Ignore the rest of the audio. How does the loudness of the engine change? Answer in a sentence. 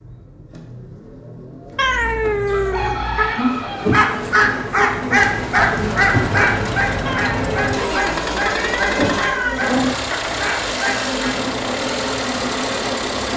The loudness of the engine goes up.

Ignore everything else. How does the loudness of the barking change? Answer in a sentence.
The volume of the barking goes down.